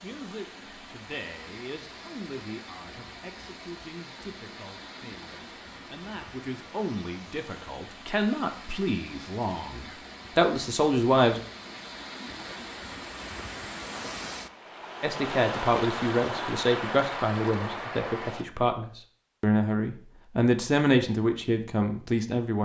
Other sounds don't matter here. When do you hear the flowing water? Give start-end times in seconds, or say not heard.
0.0-18.4.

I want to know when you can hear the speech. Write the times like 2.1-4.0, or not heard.
0.0-11.4, 15.0-22.6.